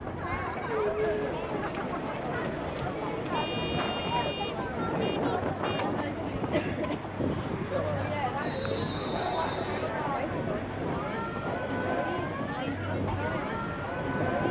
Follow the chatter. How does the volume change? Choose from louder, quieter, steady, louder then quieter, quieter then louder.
steady.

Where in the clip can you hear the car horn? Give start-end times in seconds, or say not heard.
3.3-5.9.